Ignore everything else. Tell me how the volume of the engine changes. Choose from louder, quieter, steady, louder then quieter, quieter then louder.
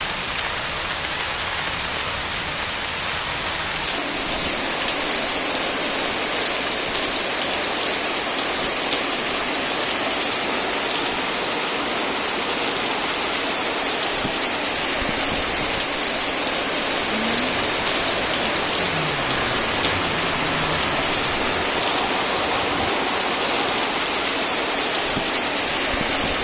steady.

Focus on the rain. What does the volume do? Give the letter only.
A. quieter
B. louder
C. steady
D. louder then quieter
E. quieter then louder
C.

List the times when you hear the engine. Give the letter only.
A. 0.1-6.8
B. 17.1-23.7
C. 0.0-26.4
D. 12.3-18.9
B.